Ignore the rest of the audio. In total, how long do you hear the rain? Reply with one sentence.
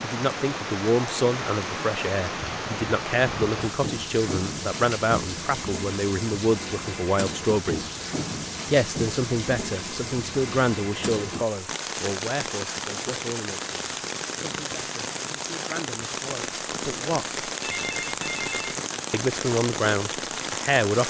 You can hear the rain for 21 seconds altogether.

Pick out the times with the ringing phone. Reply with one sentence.
The ringing phone can be heard from 17.6 to 18.8 s.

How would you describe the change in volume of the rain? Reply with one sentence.
The loudness of the rain stays about the same.